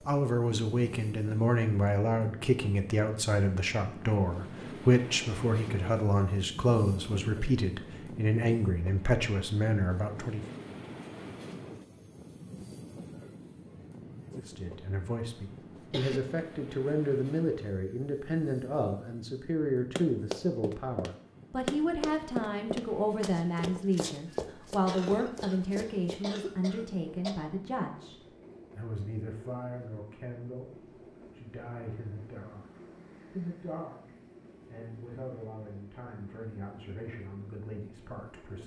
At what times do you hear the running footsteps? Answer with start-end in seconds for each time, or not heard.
19.9-26.2.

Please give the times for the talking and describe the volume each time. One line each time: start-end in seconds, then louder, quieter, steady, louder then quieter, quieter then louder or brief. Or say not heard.
0.1-10.4 steady
14.3-38.6 quieter.